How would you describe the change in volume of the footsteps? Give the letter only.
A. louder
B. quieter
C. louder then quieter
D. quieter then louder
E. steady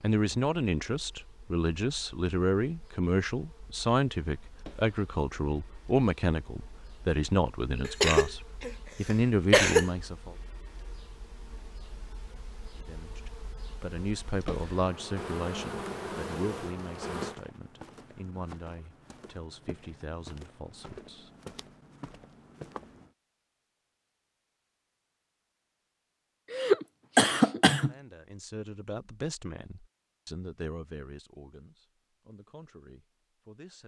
D.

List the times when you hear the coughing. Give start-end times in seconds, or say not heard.
7.8-9.9, 26.5-27.9.